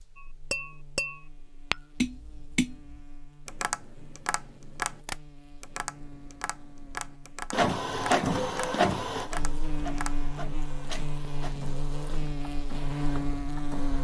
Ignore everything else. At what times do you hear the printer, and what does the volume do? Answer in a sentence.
The printer can be heard from 7.5 to 13.9 s, getting quieter.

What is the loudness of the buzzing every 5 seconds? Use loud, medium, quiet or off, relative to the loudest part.
quiet, medium, loud.